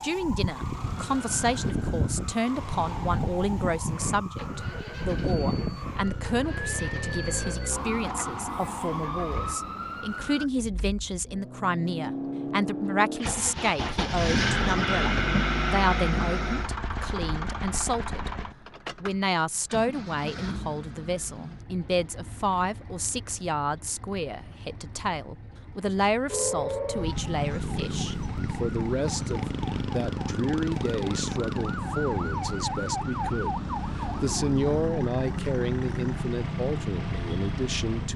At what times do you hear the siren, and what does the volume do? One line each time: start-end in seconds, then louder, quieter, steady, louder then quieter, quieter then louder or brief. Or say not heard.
0.0-10.5 steady
26.2-38.1 steady.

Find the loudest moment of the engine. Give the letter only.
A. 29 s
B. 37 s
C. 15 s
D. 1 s
C.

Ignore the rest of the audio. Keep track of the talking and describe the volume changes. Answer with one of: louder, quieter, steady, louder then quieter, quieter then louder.
steady.